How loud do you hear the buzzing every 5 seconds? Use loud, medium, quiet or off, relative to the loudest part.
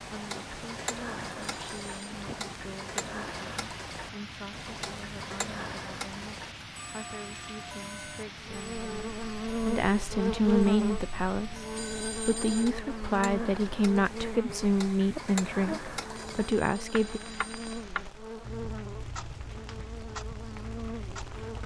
off, loud, loud, medium, medium.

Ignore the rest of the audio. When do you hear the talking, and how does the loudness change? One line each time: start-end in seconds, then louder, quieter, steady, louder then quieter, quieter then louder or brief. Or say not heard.
0.0-17.2 louder.